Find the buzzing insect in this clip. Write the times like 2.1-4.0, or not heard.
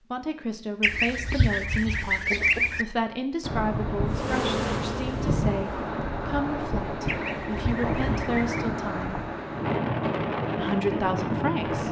4.0-5.8.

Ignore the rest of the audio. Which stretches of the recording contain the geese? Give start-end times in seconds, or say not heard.
0.8-2.9, 7.0-8.7.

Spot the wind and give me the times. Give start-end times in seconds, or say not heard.
3.4-11.8.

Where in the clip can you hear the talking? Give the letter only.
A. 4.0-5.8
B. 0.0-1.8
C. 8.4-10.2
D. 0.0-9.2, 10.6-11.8
D.